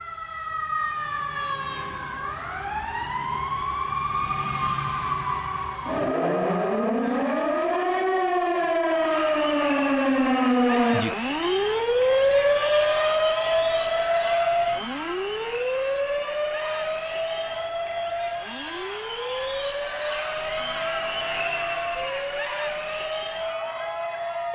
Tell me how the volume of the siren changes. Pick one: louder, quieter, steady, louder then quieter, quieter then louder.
louder then quieter.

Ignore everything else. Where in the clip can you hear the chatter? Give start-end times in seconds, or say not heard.
8.9-24.5.